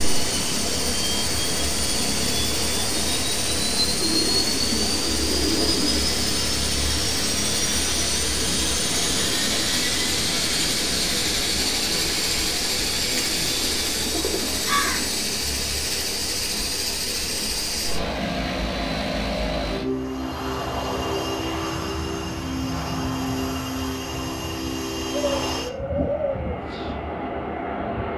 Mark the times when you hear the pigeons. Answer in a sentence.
You can hear the pigeons from 4.0 to 6.0 s, from 13.1 to 15.1 s and from 25.1 to 26.6 s.